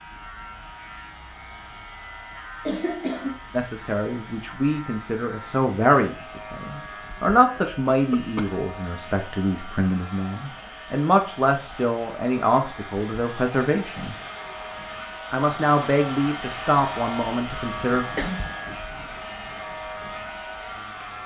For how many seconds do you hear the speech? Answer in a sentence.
The speech can be heard for 13 seconds in total.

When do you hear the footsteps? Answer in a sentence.
The footsteps can't be heard in this clip.